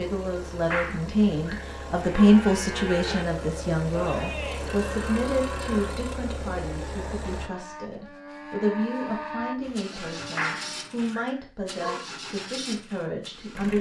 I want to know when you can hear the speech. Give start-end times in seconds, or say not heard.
0.0-13.7.